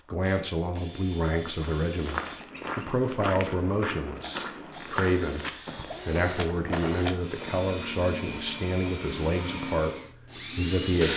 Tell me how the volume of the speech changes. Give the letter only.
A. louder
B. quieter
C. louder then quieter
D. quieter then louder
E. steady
E.